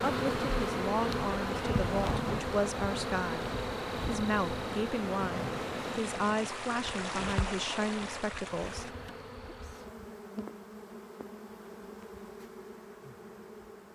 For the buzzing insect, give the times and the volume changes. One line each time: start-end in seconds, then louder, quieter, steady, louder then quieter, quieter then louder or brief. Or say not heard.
0.0-13.9 quieter.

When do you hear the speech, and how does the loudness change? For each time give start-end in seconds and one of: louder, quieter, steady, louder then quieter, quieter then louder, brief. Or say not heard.
0.0-8.9 steady.